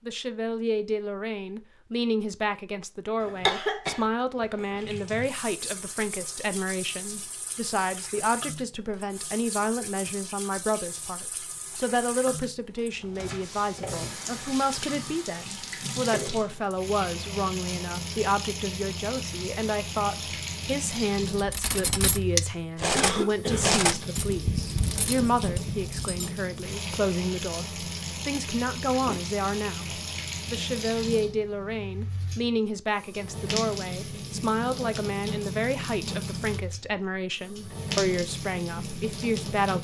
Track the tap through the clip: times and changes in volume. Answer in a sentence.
The tap can be heard from 4.8 to 39.8 s, getting louder.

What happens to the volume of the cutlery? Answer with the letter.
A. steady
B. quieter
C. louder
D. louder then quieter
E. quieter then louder
B.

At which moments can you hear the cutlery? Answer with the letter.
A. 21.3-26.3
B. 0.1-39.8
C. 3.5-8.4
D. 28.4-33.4
A.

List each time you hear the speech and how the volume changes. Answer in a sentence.
The speech can be heard from 0.1 to 39.8 s, at a steady volume.